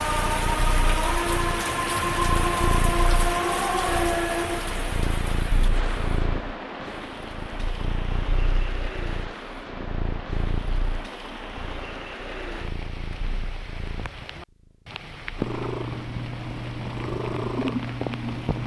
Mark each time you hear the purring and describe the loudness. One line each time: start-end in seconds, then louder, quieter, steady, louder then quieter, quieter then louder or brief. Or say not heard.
0.0-18.6 quieter then louder.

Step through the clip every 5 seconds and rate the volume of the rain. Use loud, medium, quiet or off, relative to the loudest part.
loud, medium, quiet, medium.